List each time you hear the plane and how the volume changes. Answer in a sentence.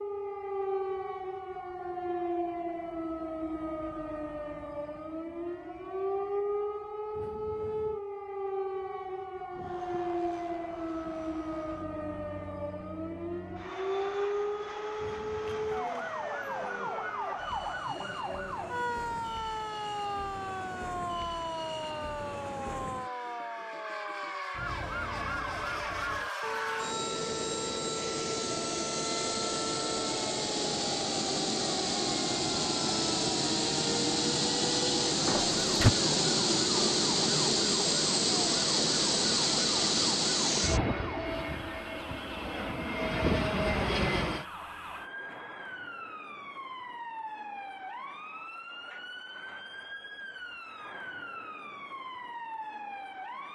The plane can be heard from 9.5 to 44.5 s, getting louder.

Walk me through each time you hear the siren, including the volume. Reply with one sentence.
You can hear the siren from 0.0 to 53.5 s, getting quieter.